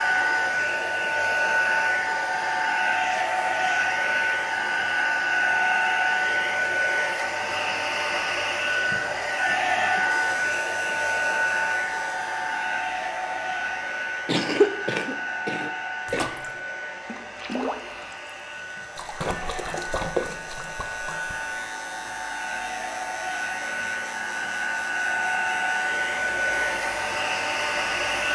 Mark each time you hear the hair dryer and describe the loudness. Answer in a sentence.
You can hear the hair dryer from 0.0 to 28.3 s, getting quieter then louder.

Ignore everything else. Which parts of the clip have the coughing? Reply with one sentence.
The coughing can be heard from 14.2 to 16.3 s.